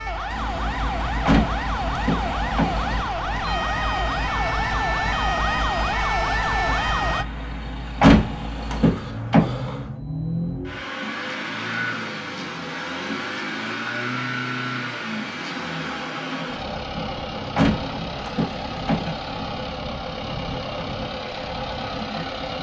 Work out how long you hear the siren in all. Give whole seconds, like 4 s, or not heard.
7 s.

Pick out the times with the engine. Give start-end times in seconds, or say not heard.
0.1-22.5.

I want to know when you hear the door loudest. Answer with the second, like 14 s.
8 s.